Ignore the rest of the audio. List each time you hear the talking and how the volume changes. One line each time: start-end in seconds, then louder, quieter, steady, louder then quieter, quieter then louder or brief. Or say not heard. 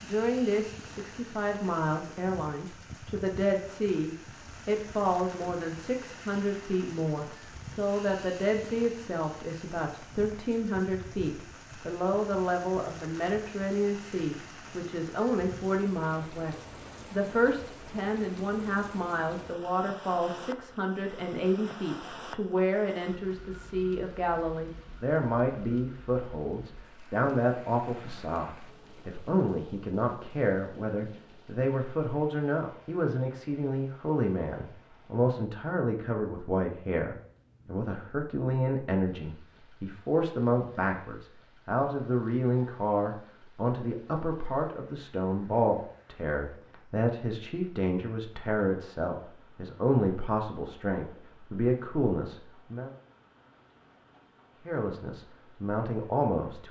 0.0-52.9 steady
54.6-56.6 brief.